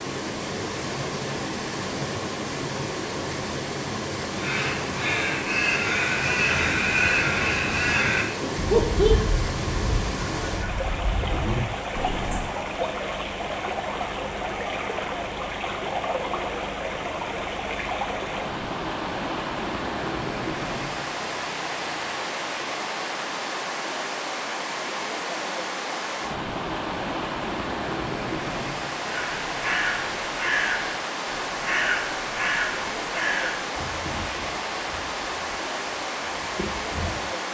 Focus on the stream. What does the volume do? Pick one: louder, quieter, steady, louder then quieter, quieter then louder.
steady.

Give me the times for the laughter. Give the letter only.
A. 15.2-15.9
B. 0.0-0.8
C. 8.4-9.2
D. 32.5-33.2
C.